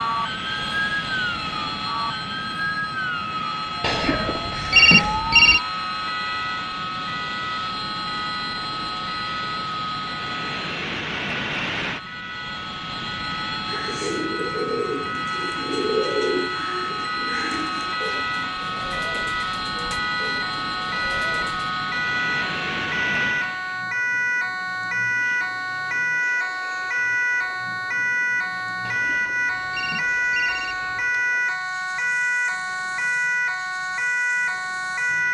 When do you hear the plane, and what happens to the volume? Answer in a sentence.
You can hear the plane from 0.0 to 35.2 s, getting quieter.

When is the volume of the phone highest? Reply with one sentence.
The volume of the phone peaks at 5 seconds.